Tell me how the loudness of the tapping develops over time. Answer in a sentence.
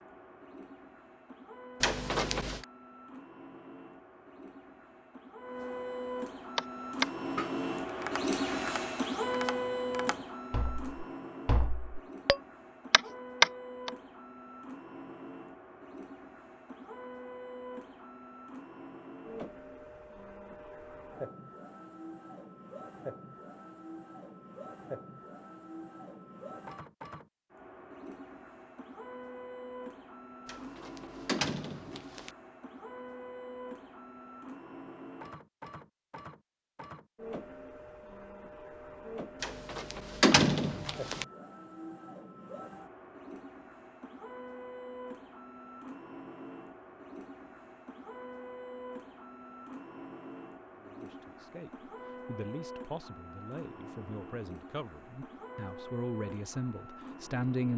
The loudness of the tapping goes down, then up.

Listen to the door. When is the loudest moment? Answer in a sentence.
The volume of the door peaks at 40 seconds.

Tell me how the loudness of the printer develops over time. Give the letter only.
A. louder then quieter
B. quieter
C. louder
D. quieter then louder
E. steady
B.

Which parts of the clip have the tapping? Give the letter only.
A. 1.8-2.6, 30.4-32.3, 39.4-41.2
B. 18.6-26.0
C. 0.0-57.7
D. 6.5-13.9
D.